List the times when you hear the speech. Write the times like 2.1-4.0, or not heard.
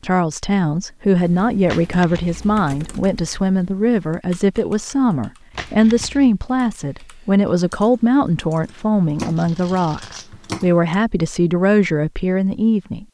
0.0-13.0.